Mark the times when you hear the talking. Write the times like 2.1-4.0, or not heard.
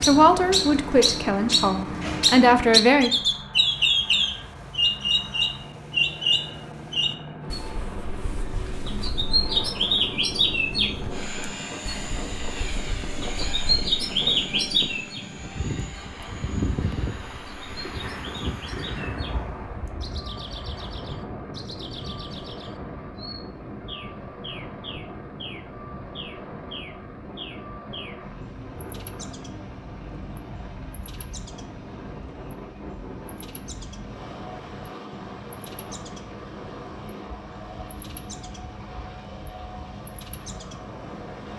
0.0-3.1.